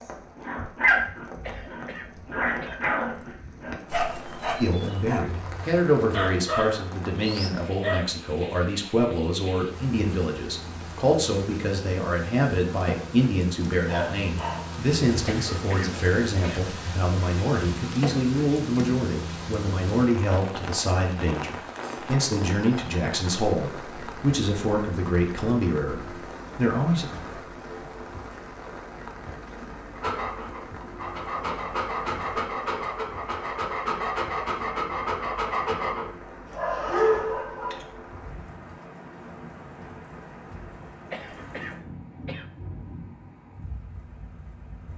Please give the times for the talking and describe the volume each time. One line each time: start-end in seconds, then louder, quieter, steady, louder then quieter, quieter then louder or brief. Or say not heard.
4.6-27.1 steady.